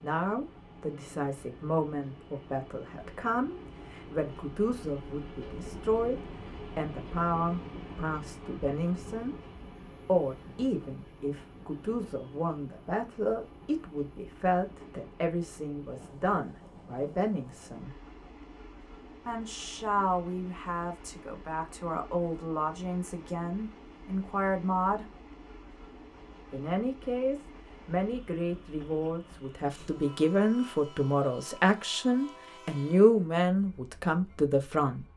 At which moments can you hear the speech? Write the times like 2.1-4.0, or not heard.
0.0-9.3, 9.9-17.9, 19.2-25.1, 26.5-35.0.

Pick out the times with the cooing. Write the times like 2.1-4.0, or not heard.
not heard.